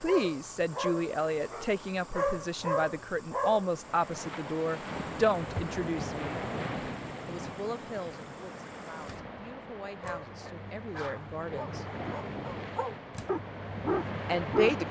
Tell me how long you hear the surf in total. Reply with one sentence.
You can hear the surf for 11 seconds altogether.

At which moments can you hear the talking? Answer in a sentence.
You can hear the talking from 0.0 to 6.4 s, from 7.2 to 11.8 s and from 14.2 to 14.8 s.